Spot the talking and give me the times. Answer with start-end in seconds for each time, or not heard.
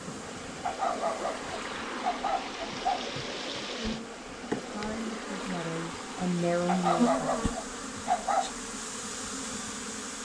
4.5-7.3.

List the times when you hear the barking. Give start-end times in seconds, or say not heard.
0.6-3.1, 6.7-8.5.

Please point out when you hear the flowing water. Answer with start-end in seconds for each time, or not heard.
0.0-7.2.